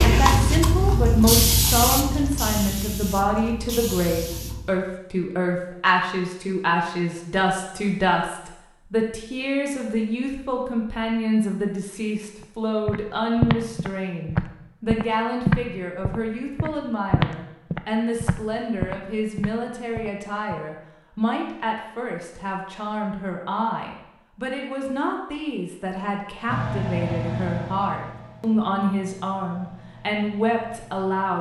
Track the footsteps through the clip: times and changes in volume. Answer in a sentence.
You can hear the footsteps from 12.8 to 20.6 s, getting quieter.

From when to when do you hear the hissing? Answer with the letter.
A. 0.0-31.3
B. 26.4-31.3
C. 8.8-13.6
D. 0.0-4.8
D.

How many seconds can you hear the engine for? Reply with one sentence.
The engine can be heard for 5 seconds in total.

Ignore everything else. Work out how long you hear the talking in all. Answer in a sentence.
You can hear the talking for 31 seconds altogether.